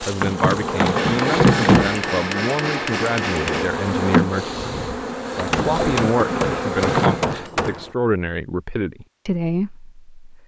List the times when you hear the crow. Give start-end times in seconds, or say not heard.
not heard.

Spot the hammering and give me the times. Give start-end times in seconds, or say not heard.
0.9-3.7, 5.5-8.0.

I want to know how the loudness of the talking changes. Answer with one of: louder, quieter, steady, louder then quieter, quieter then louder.
steady.